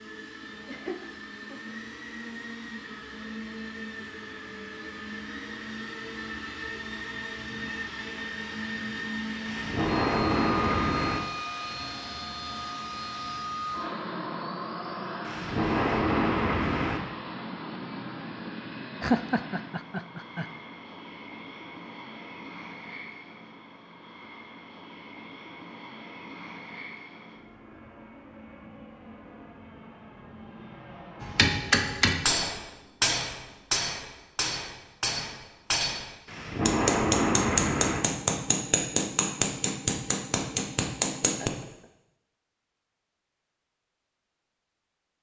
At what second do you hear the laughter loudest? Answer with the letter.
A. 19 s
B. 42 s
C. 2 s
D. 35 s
A.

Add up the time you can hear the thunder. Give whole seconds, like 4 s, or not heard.
5 s.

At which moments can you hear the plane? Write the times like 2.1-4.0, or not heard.
0.0-31.5.